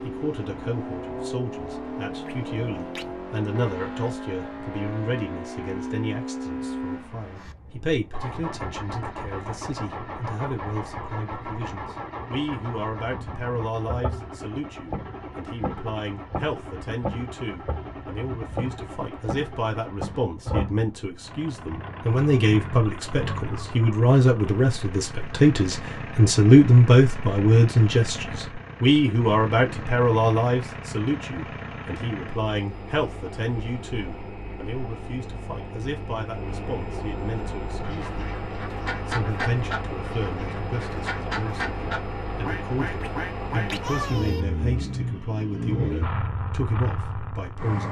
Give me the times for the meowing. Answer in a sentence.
You can hear the meowing from 2.2 to 3.1 s and from 43.0 to 43.9 s.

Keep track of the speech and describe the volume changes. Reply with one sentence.
The loudness of the speech goes up, then down.